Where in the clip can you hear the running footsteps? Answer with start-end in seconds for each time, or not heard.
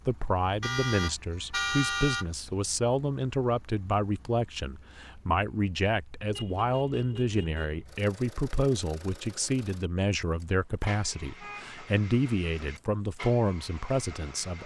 not heard.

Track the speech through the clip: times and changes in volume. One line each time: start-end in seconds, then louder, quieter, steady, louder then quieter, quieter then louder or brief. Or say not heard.
0.1-14.6 steady.